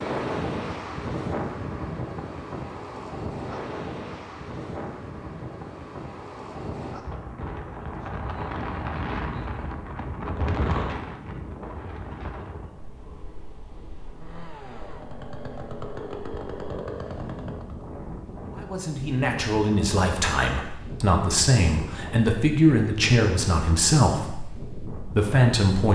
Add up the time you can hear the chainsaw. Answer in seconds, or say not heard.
4 s.